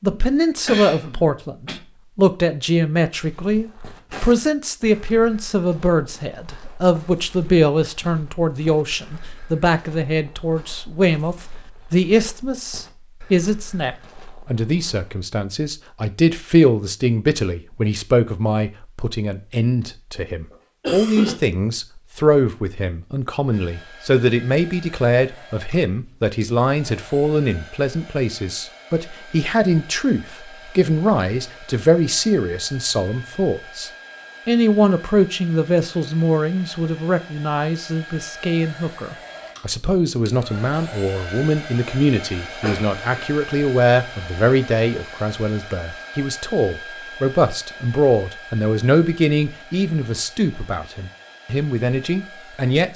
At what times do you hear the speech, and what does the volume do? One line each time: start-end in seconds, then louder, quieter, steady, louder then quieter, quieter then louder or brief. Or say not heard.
0.0-52.9 steady.